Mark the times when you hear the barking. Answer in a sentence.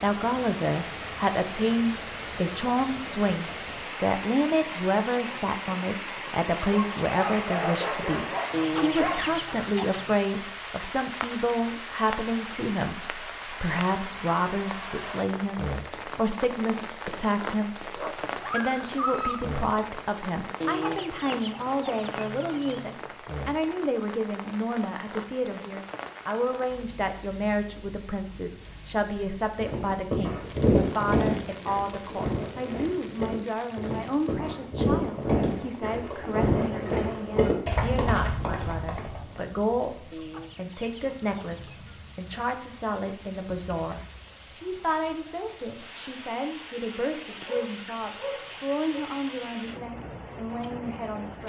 The barking can be heard from 6.6 to 9.2 s, from 17.9 to 19.4 s and from 47.5 to 49.0 s.